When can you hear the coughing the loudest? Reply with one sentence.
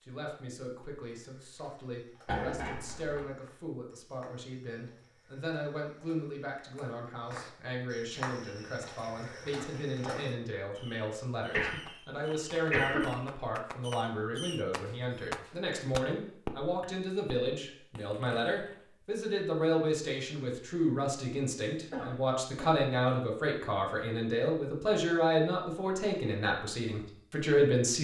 The loudest moment of the coughing is at 13 seconds.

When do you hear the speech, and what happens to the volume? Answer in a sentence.
The speech can be heard from 0.0 to 27.9 s, getting louder.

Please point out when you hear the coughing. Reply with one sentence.
The coughing can be heard from 2.2 to 3.2 s, from 11.5 to 13.1 s and from 21.9 to 22.8 s.